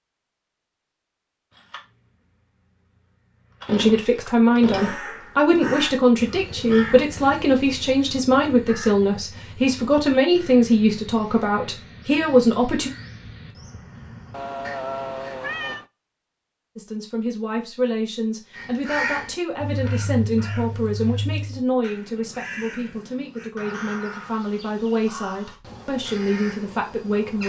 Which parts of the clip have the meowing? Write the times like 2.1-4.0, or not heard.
14.3-15.8.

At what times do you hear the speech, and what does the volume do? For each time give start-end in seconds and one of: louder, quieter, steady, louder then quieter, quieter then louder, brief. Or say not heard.
3.7-12.9 steady
16.8-27.4 steady.